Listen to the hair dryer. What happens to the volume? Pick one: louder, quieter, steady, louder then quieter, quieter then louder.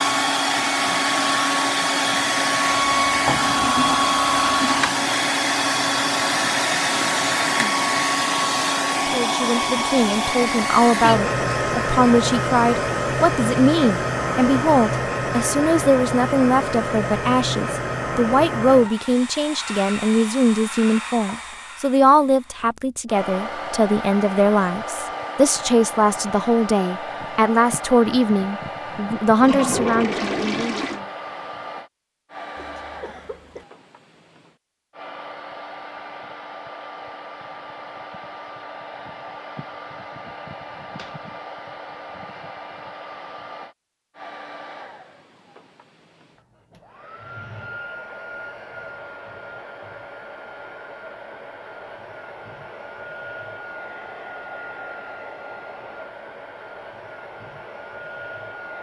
quieter.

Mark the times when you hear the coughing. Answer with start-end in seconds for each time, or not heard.
32.5-33.6.